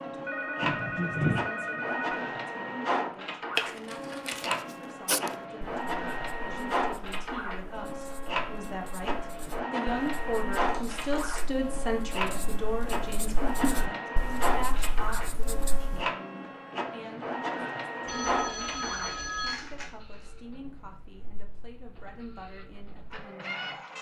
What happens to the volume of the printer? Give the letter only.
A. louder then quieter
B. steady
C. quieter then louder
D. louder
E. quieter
E.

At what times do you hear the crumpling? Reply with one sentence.
You can hear the crumpling from 3.5 to 4.5 s, from 10.6 to 11.2 s and from 19.4 to 20.2 s.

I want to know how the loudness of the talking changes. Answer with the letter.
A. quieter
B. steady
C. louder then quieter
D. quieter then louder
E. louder
C.